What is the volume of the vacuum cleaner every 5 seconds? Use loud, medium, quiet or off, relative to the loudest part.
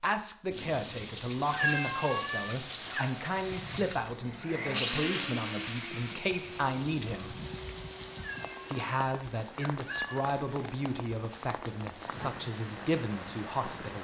loud, loud, off.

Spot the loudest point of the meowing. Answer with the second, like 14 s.
2 s.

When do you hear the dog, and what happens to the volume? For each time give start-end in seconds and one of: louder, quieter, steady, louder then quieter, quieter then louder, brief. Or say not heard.
not heard.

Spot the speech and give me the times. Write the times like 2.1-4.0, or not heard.
0.0-7.4, 8.7-13.9.